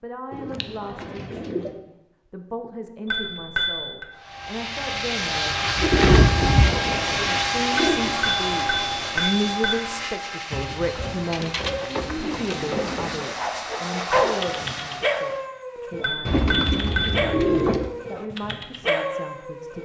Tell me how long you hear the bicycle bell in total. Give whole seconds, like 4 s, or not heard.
4 s.